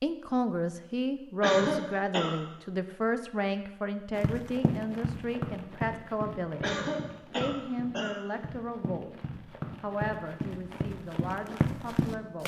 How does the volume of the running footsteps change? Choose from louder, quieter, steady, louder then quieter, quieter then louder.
quieter then louder.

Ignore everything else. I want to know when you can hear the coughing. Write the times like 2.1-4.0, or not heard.
1.4-2.4, 6.6-8.2.